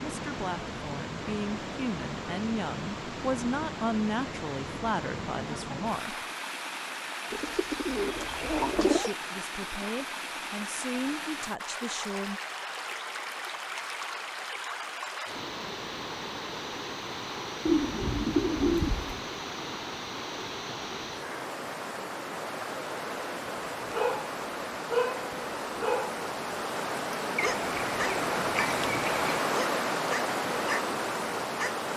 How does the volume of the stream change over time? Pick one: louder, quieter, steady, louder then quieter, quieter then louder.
louder.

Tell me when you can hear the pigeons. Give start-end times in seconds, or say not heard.
7.3-9.1, 17.6-19.2, 27.4-29.4.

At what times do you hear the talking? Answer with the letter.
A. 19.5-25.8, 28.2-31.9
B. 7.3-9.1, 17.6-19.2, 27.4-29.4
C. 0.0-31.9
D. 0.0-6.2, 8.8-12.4
D.